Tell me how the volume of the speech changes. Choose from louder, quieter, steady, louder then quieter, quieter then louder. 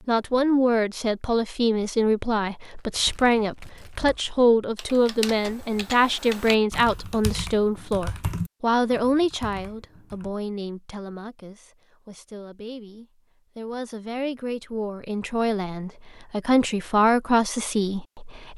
quieter then louder.